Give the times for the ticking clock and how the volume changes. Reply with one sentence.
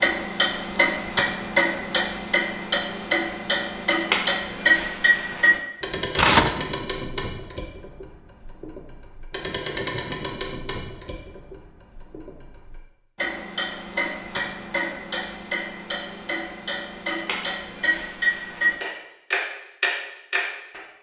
The ticking clock can be heard from 0.0 to 20.8 s, getting quieter then louder.